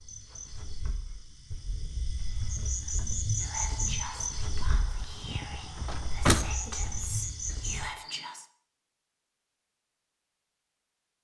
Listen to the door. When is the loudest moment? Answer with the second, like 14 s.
6 s.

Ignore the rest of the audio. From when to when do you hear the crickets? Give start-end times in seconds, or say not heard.
0.0-8.2.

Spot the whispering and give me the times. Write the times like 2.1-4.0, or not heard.
2.6-8.4.